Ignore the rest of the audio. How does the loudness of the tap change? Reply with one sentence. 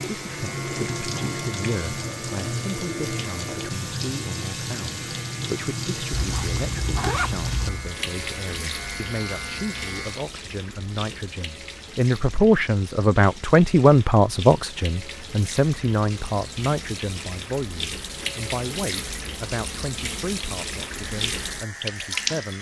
The loudness of the tap goes down, then up.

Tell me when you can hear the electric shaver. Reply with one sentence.
You can hear the electric shaver from 0.0 to 10.3 s and from 20.9 to 22.5 s.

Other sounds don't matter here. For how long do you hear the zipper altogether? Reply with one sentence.
The zipper can be heard for 2 seconds in total.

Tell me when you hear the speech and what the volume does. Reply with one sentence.
You can hear the speech from 0.1 to 22.5 s, getting louder then quieter.